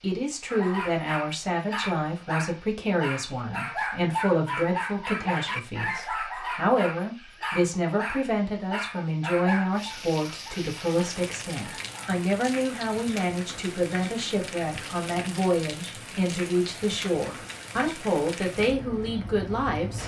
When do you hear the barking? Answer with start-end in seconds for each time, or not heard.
0.5-12.2.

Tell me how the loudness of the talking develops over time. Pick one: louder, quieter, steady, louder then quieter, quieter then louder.
steady.